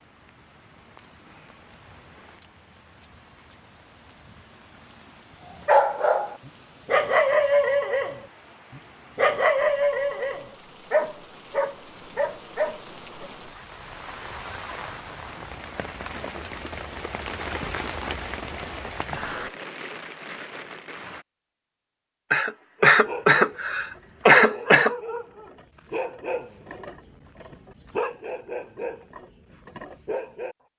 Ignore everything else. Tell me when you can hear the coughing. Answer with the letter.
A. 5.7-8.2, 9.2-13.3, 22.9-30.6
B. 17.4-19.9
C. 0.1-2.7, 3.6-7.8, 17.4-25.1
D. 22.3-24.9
D.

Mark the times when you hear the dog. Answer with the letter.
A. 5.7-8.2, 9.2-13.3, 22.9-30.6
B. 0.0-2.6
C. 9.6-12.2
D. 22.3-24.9
A.